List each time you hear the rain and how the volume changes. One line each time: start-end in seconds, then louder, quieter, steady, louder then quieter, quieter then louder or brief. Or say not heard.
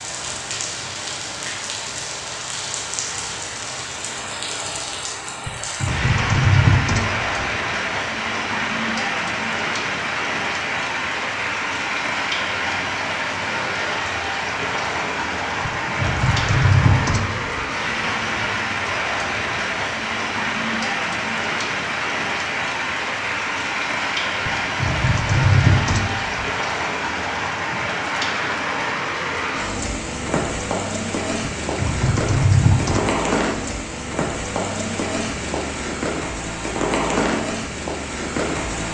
0.0-38.8 steady.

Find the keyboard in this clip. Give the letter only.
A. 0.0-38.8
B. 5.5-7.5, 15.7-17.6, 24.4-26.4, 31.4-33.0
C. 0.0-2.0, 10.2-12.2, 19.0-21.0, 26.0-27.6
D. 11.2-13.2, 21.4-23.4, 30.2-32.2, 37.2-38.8
B.